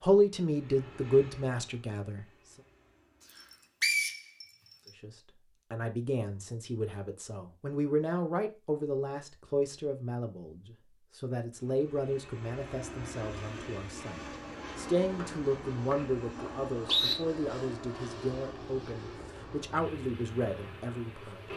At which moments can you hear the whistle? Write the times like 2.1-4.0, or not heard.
3.8-4.2, 15.2-17.1.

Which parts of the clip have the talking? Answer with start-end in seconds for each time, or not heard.
0.0-2.2, 5.0-21.5.